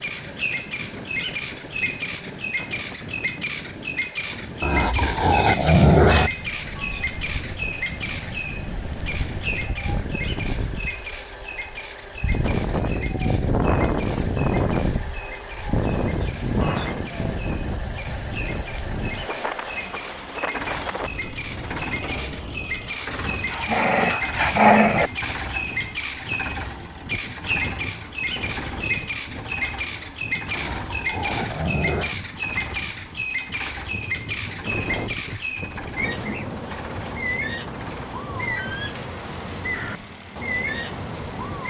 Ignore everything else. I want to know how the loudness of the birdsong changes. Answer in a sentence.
The loudness of the birdsong goes down, then up.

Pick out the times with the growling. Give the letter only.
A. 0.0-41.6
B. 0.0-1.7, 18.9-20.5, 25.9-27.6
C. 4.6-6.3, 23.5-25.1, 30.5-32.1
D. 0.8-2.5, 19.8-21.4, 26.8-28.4
C.